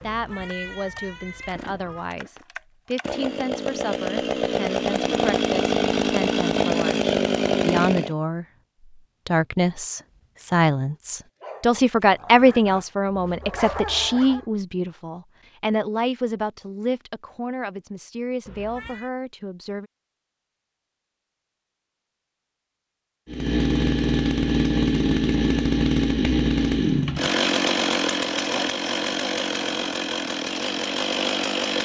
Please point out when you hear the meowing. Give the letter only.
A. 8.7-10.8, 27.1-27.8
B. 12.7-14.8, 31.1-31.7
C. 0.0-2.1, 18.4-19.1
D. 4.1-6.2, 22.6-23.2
C.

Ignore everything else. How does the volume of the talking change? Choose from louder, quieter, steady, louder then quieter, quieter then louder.
louder then quieter.